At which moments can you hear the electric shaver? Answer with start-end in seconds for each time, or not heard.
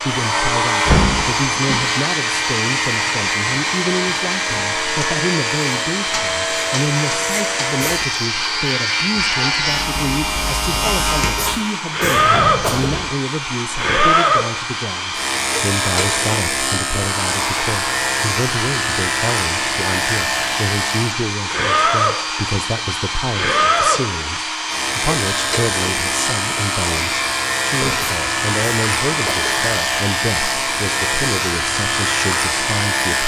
0.0-33.2.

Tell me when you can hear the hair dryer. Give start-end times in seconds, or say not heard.
0.0-33.1.